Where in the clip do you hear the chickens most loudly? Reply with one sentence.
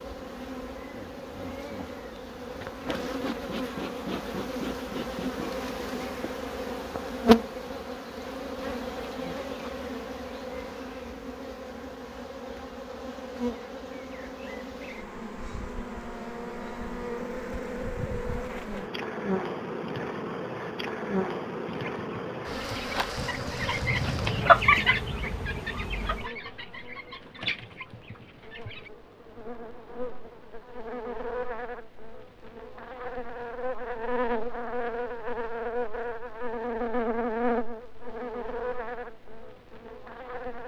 The volume of the chickens peaks at 25 seconds.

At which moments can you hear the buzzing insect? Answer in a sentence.
The buzzing insect can be heard from 0.0 to 40.6 s.